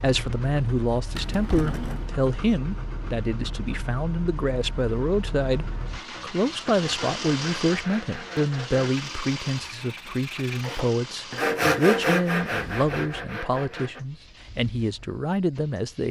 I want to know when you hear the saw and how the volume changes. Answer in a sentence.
The saw can be heard from 6.7 to 14.1 s, getting louder then quieter.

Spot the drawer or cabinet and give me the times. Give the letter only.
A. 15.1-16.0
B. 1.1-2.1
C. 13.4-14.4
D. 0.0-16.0
B.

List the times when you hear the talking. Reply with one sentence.
The talking can be heard from 0.0 to 16.0 s.